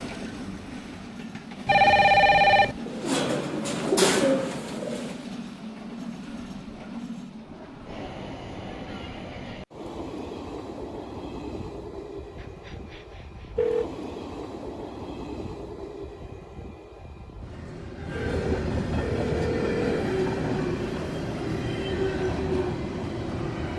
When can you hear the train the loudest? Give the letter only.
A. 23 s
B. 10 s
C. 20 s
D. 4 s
C.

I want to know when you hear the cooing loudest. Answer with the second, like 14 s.
4 s.